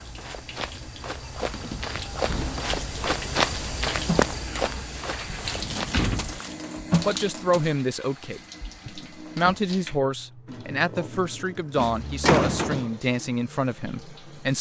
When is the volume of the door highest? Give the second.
12 s.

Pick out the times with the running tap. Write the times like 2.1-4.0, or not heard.
0.0-14.5.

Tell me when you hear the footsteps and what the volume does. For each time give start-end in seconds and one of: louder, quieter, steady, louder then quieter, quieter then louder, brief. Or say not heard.
0.0-7.8 louder then quieter.